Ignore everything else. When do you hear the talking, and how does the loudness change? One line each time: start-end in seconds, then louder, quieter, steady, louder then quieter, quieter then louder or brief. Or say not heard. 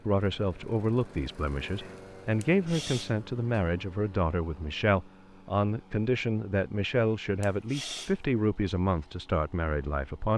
0.1-10.3 steady.